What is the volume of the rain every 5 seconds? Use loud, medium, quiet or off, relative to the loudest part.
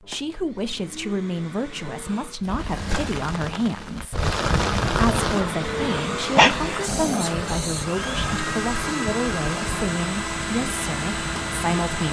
loud, loud, medium.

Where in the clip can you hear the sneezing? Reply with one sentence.
You can hear the sneezing from 5.8 to 6.5 s.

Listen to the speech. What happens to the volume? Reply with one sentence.
The volume of the speech stays about the same.